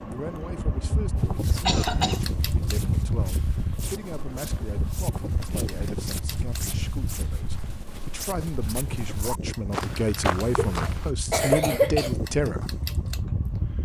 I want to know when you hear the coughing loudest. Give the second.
12 s.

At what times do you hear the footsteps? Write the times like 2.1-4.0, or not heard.
1.1-11.1.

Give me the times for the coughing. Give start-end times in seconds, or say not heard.
1.6-2.2, 10.4-12.2.